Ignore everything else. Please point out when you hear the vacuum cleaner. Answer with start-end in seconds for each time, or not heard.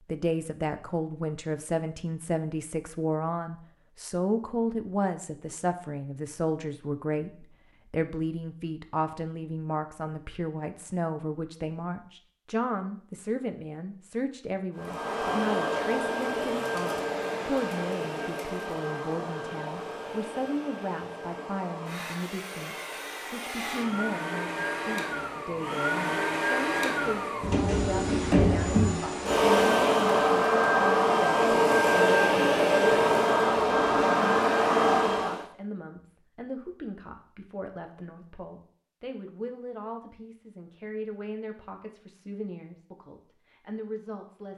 14.8-35.5.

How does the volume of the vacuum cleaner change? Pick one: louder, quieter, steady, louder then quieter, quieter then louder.
quieter then louder.